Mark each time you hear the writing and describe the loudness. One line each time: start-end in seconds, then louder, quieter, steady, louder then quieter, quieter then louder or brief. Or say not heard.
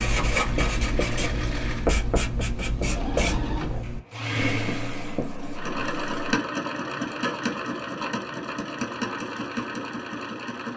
0.0-6.4 quieter.